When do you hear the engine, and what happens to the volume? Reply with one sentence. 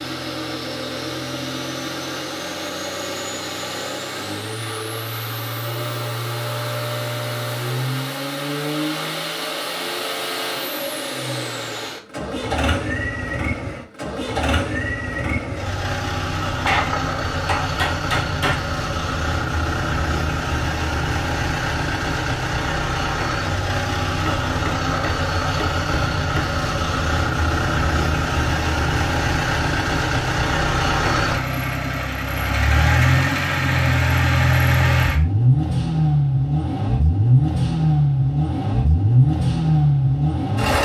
The engine can be heard from 0.0 to 40.8 s, getting louder.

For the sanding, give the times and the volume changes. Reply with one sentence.
The sanding can't be heard in this clip.